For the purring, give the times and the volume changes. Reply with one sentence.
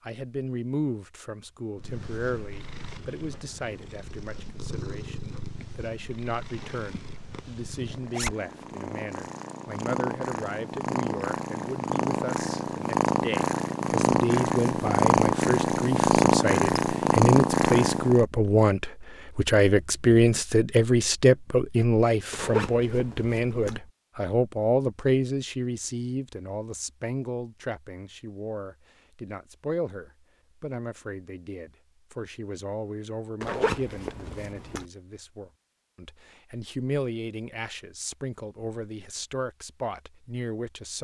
You can hear the purring from 1.8 to 18.2 s, getting louder.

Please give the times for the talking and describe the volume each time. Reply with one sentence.
The talking can be heard from 0.0 to 40.9 s, getting louder then quieter.